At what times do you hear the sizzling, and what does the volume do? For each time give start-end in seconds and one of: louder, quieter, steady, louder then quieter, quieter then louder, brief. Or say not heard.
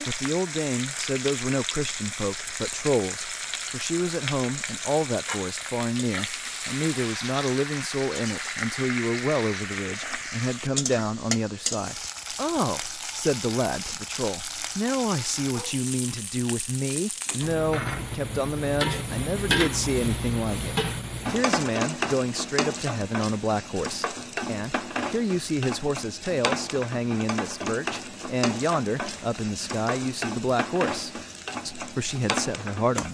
0.0-33.0 steady.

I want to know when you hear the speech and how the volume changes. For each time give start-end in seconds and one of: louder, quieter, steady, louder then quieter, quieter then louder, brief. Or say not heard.
0.0-33.0 steady.